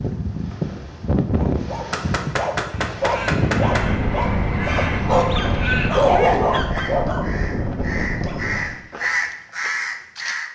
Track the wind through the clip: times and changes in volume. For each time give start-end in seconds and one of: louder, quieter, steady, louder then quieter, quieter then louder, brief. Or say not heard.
0.0-8.8 steady.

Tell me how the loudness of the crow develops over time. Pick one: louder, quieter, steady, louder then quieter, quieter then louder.
quieter then louder.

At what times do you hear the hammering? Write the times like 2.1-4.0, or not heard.
1.9-3.9.